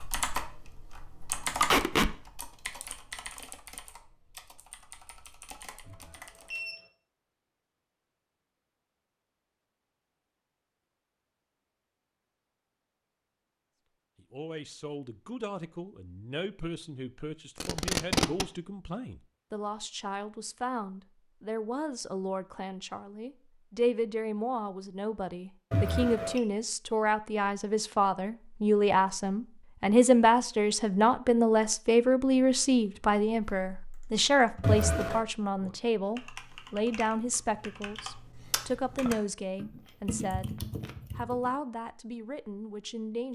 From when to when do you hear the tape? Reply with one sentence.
You can hear the tape from 1.6 to 2.1 s, from 17.6 to 18.4 s and from 39.7 to 41.0 s.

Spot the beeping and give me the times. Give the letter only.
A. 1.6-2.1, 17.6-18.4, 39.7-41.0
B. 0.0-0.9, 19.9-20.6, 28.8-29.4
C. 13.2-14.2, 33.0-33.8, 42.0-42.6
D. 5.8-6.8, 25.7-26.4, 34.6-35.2
D.